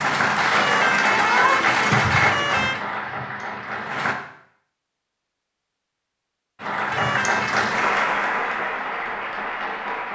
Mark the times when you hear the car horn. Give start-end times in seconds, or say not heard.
0.6-2.9, 6.9-7.5.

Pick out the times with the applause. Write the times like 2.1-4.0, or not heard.
0.0-4.2, 6.5-10.1.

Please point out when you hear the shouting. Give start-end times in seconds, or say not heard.
1.1-1.6.